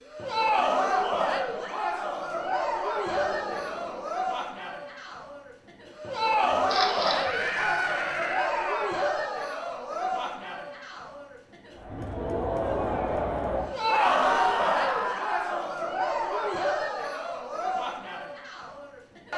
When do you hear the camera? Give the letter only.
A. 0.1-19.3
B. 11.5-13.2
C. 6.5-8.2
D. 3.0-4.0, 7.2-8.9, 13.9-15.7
C.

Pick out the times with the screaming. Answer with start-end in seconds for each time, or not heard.
3.0-4.0, 7.2-8.9, 13.9-15.7.